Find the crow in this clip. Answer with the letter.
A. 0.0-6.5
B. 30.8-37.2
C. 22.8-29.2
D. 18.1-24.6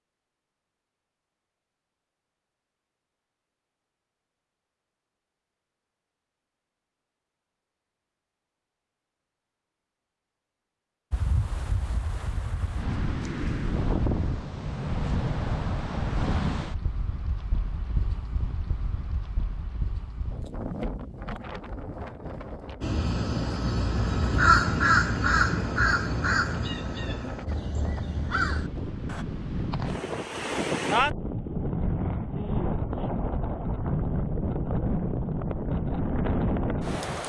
C.